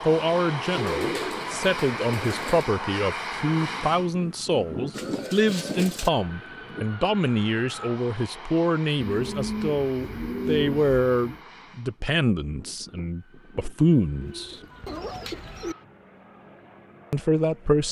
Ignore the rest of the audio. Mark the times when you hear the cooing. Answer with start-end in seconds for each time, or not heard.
0.7-2.7, 4.9-6.1, 9.1-11.4, 14.2-15.8.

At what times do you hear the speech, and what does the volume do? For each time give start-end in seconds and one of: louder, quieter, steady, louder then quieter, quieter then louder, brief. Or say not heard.
0.0-14.6 steady
17.1-17.8 brief.